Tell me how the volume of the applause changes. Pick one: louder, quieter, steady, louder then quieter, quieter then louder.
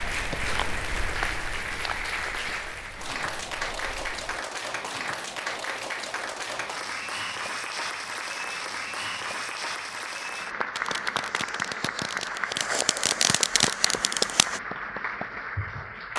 steady.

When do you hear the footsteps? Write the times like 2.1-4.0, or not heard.
0.0-4.4.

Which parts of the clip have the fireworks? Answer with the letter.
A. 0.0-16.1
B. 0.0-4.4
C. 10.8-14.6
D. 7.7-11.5
C.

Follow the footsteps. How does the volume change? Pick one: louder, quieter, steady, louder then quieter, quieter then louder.
quieter.